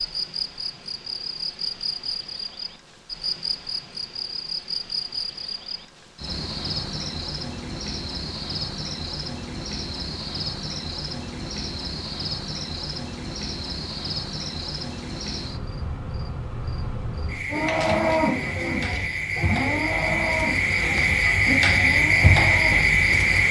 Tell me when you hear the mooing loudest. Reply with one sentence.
The volume of the mooing peaks at 18 seconds.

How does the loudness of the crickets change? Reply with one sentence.
The loudness of the crickets goes up.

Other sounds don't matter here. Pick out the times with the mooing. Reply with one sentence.
The mooing can be heard from 17.5 to 23.1 s.